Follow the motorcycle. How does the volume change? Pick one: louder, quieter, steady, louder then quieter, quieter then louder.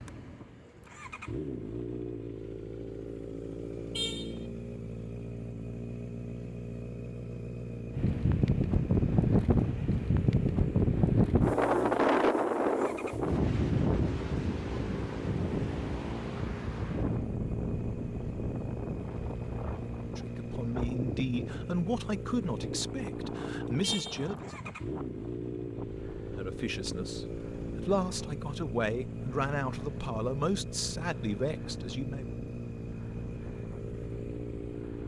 steady.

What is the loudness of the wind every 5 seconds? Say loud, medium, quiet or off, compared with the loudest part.
off, loud, loud, medium, quiet, quiet, quiet.